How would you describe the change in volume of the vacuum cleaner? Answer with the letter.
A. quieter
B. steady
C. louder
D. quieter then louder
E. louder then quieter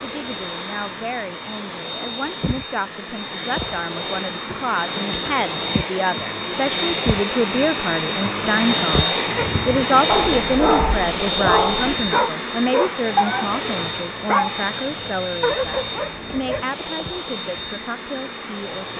E.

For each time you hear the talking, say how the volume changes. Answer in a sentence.
You can hear the talking from 0.0 to 18.9 s, getting louder then quieter.